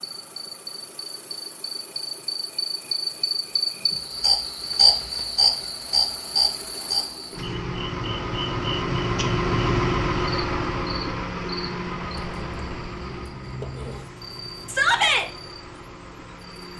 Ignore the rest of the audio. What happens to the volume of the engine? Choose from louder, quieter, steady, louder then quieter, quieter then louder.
louder then quieter.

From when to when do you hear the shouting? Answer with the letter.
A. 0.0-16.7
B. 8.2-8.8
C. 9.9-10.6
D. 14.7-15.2
D.